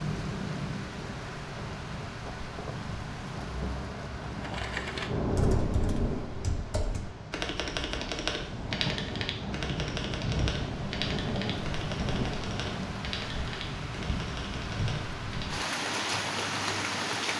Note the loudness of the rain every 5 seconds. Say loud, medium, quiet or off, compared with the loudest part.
medium, loud, loud, loud.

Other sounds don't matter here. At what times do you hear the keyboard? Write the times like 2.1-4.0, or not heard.
4.4-15.7.